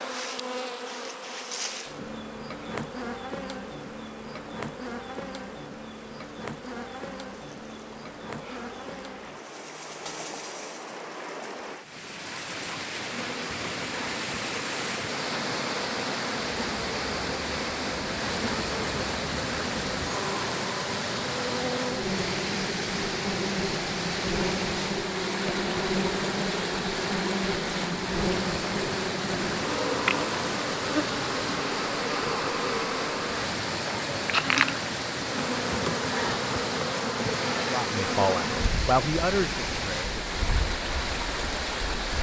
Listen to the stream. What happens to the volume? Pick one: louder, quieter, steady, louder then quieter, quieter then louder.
louder.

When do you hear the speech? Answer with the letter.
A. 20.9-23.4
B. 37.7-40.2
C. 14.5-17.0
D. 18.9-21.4
B.